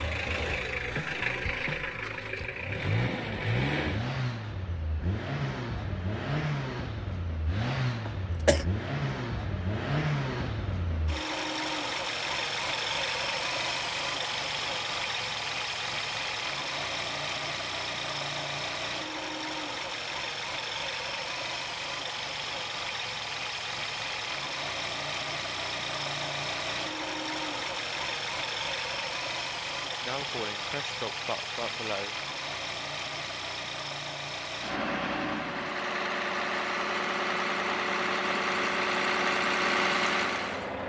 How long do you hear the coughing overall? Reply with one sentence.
The coughing can be heard for 3 seconds in total.